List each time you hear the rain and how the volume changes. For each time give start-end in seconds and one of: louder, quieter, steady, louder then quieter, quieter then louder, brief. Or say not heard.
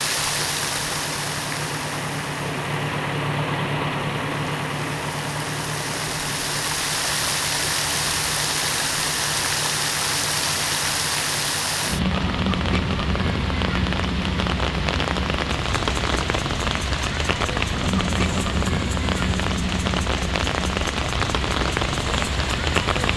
0.0-23.1 louder.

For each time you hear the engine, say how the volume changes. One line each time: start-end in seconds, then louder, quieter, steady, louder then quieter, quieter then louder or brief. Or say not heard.
0.0-23.1 quieter.